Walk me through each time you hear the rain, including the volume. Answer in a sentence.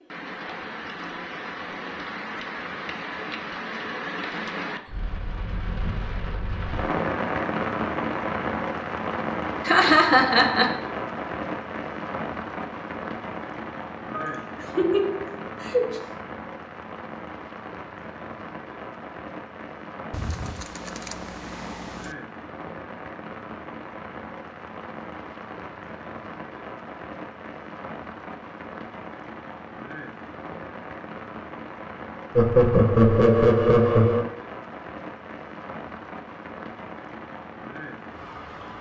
You can hear the rain from 0.0 to 38.7 s, getting quieter.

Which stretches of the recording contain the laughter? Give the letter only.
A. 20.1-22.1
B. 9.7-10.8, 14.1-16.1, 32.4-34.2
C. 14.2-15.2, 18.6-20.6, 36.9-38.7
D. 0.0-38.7
B.